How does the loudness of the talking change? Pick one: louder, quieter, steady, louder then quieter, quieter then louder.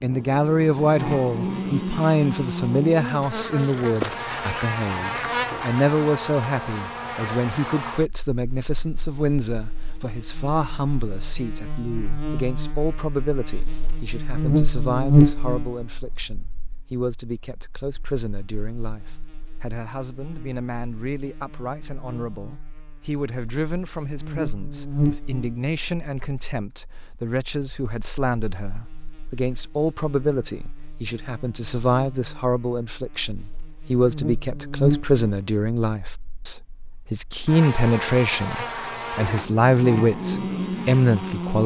quieter then louder.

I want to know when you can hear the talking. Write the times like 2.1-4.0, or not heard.
0.0-41.6.